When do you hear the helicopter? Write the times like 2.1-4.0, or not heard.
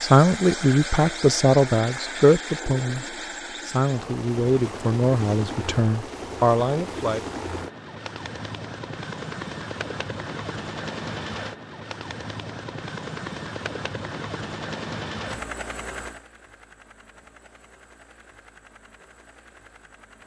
0.0-20.2.